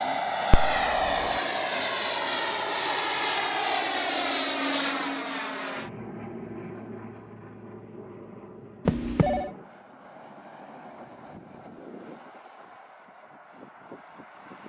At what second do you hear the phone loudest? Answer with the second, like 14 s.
9 s.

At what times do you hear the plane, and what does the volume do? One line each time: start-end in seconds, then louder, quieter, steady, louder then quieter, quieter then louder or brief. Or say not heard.
0.0-14.6 quieter.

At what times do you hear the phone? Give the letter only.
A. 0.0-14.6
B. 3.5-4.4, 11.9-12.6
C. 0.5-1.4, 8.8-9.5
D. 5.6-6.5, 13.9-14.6
C.